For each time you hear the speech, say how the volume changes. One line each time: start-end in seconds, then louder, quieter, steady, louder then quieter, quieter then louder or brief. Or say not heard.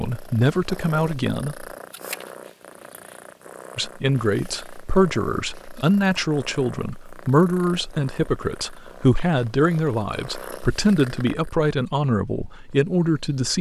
0.0-1.6 brief
3.8-13.5 steady.